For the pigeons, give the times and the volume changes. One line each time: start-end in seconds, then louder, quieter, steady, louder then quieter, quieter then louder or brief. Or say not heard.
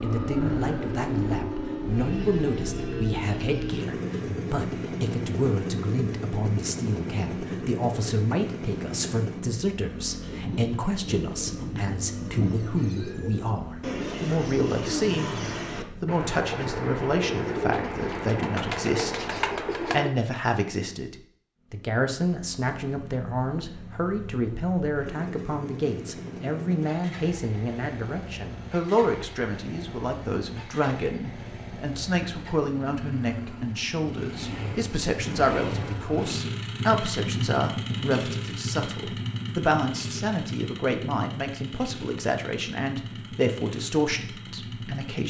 10.2-20.1 louder.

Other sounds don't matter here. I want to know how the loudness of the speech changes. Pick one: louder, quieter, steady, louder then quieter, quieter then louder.
steady.